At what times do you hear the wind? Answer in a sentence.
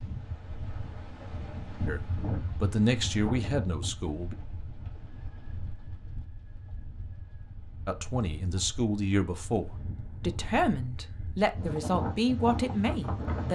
The wind can be heard from 0.0 to 13.5 s.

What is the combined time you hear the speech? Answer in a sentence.
You can hear the speech for 8 seconds altogether.